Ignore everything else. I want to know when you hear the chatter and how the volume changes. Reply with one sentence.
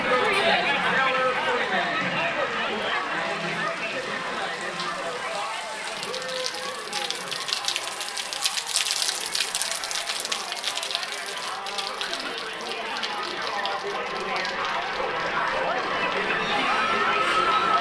You can hear the chatter from 0.0 to 17.7 s, getting quieter then louder.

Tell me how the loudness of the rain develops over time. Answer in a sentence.
The volume of the rain goes up, then down.